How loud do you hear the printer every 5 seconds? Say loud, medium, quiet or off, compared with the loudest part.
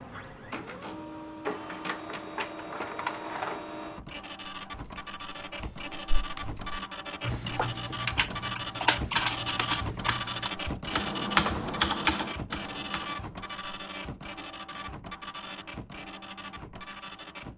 loud, loud, loud, medium.